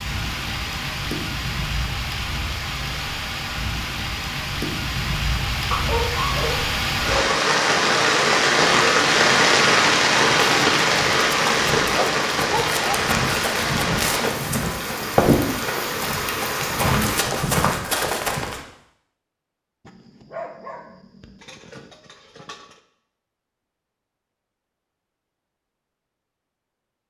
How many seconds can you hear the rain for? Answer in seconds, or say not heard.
17 s.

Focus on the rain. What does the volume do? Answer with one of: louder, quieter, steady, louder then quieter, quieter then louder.
louder then quieter.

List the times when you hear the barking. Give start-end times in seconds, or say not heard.
5.7-7.3, 11.8-13.0, 19.9-22.8.